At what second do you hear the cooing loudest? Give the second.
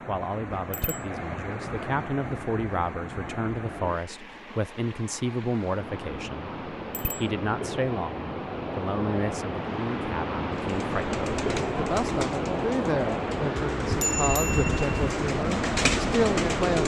16 s.